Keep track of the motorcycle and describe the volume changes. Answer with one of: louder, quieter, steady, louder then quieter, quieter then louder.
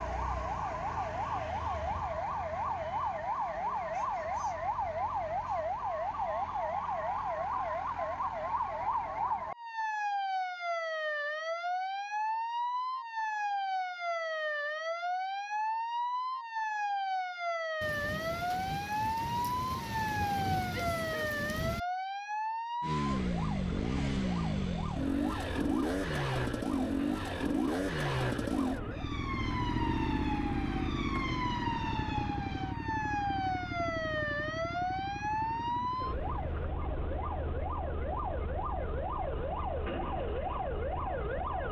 quieter.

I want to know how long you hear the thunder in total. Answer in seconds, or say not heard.
4 s.